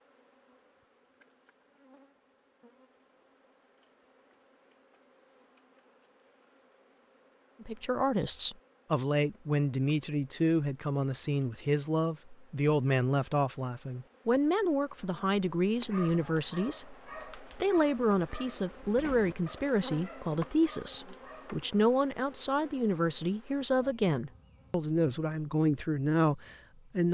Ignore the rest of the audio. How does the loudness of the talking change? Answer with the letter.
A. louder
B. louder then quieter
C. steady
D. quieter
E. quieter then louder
C.